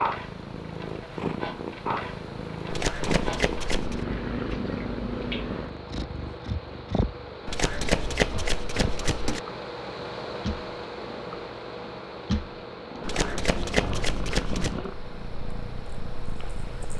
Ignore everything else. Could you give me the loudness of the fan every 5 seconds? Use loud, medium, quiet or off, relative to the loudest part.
medium, loud, loud, medium.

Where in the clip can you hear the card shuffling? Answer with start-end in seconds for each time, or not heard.
2.7-4.0, 7.5-9.4, 13.1-14.8.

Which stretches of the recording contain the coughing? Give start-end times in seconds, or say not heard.
not heard.